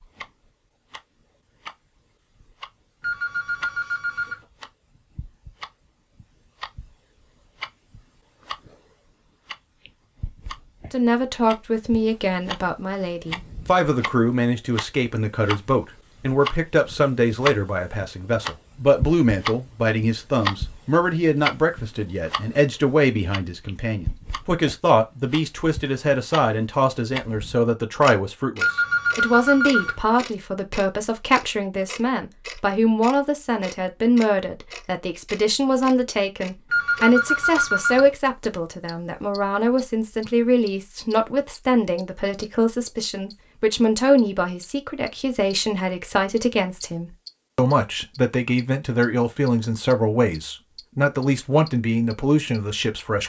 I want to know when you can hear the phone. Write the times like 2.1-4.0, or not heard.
3.0-4.5, 28.6-30.1, 36.7-38.1.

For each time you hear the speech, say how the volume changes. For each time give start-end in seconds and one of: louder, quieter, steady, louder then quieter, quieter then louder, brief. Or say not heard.
10.9-53.2 steady.